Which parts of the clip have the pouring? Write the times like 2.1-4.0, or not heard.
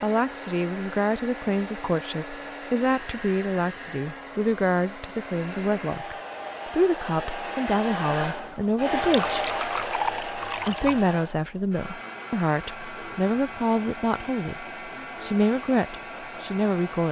8.9-11.1.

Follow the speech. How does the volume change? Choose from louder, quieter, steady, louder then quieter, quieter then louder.
steady.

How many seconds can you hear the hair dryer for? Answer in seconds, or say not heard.
17 s.